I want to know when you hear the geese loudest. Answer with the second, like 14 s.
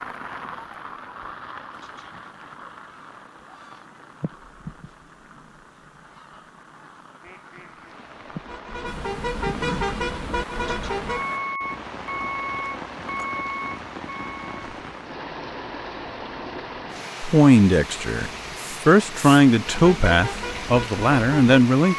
10 s.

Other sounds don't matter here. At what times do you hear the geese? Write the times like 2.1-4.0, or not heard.
1.7-11.4.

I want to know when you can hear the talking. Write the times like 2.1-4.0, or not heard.
17.2-21.9.